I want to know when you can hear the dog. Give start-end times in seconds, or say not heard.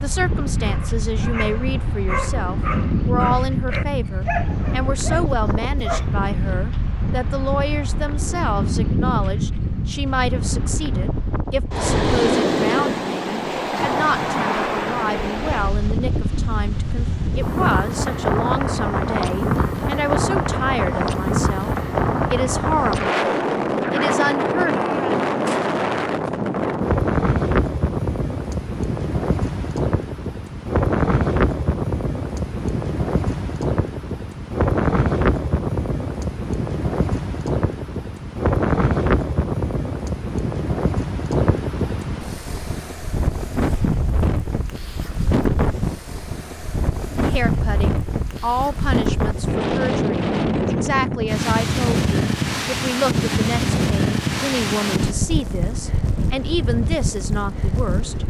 0.6-6.1.